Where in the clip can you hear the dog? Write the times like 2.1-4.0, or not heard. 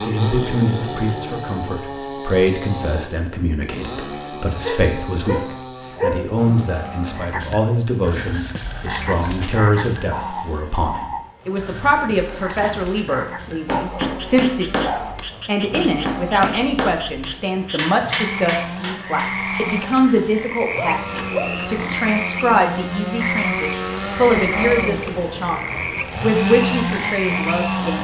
4.6-6.3, 13.7-15.2, 20.6-21.6.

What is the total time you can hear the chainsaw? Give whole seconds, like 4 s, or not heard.
28 s.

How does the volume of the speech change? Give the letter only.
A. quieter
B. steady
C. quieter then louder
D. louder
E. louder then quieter
B.